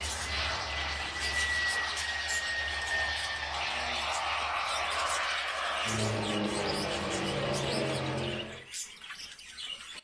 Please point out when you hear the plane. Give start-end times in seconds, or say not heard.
0.0-8.7.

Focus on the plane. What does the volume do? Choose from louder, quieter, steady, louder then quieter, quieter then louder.
steady.